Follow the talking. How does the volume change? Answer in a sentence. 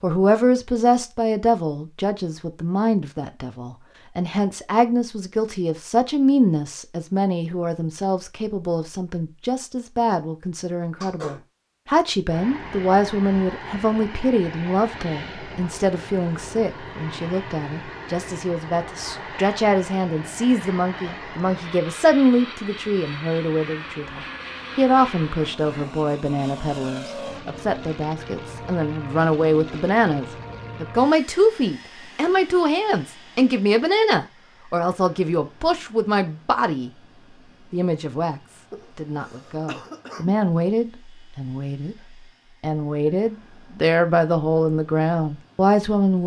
The volume of the talking stays about the same.